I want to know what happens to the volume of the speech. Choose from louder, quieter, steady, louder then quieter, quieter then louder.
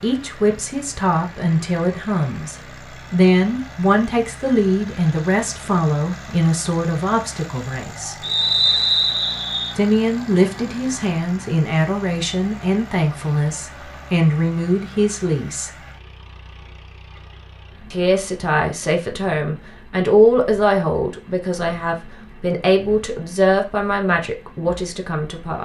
steady.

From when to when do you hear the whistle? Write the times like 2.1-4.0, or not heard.
8.2-9.8.